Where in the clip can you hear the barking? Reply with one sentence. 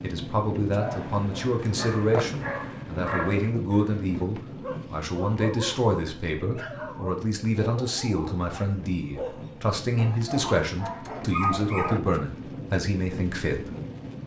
You can hear the barking from 0.7 to 3.8 s and from 4.6 to 12.2 s.